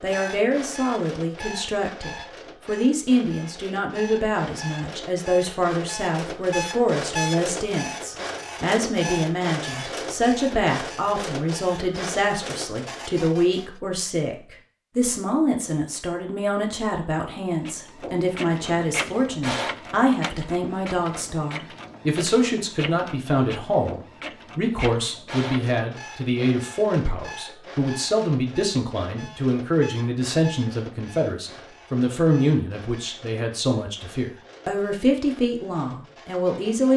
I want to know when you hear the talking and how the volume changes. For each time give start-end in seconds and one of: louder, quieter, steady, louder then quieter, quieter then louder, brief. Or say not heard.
0.0-36.9 steady.